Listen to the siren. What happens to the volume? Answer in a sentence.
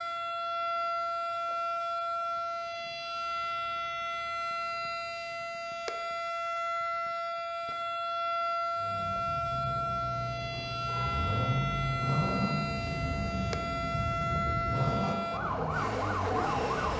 The volume of the siren stays about the same.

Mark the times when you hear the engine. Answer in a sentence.
The engine can be heard from 8.8 to 16.9 s.